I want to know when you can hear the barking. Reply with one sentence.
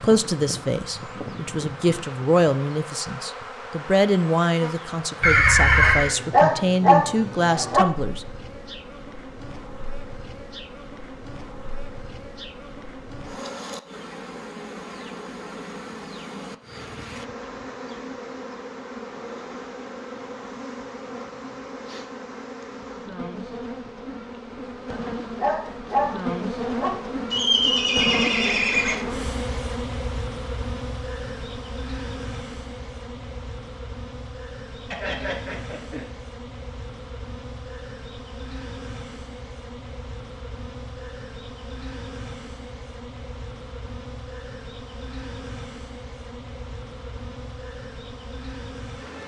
The barking can be heard from 5.8 to 7.8 s and from 24.9 to 26.9 s.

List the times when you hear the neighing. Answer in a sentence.
The neighing can be heard from 5.2 to 6.2 s, from 27.3 to 28.9 s and from 34.9 to 36.1 s.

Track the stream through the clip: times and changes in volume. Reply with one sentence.
You can't hear the stream here.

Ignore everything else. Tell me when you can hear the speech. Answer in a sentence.
The speech can be heard from 0.0 to 8.2 s.